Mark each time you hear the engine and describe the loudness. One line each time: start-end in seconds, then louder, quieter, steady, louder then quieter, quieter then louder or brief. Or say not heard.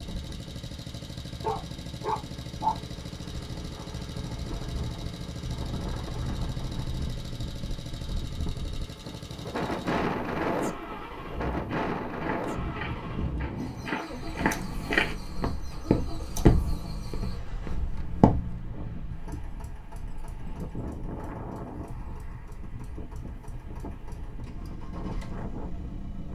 0.0-26.3 quieter.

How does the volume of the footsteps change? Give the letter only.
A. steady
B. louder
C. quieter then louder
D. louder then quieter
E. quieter
D.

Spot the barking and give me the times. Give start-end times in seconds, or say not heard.
1.4-2.8.